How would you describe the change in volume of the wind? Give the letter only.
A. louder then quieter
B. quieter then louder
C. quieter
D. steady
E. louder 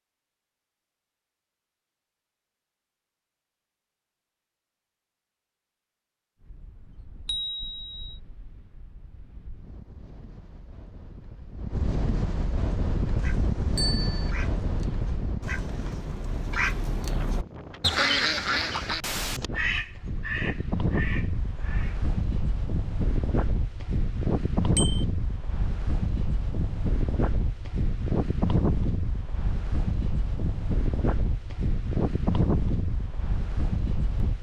E.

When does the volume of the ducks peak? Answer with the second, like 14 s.
18 s.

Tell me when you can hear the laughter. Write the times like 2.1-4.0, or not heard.
not heard.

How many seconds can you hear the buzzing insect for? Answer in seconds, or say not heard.
not heard.